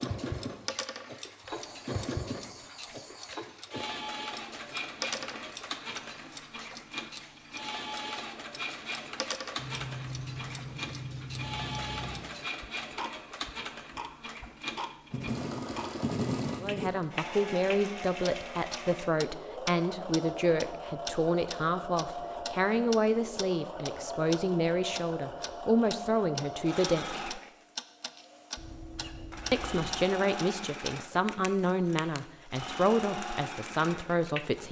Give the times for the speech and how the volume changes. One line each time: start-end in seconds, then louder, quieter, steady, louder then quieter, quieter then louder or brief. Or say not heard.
16.6-27.4 steady
29.5-34.6 steady.